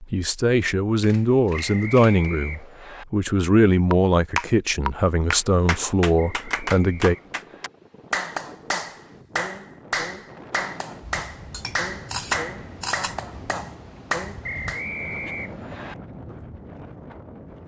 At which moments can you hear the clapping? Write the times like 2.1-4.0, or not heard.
3.9-14.8.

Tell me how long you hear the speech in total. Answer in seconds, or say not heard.
7 s.